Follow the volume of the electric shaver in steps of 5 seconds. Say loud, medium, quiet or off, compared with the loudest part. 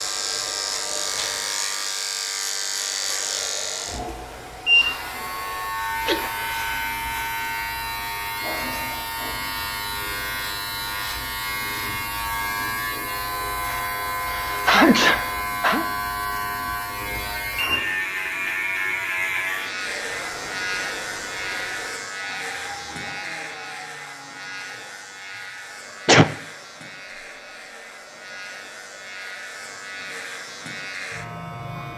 loud, loud, loud, loud, medium, quiet, medium.